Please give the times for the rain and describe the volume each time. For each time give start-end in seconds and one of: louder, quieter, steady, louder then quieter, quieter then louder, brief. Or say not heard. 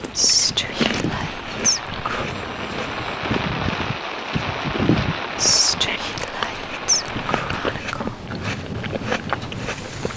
0.0-10.1 louder then quieter.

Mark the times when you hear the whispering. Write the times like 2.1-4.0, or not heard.
0.1-2.3, 5.3-8.2.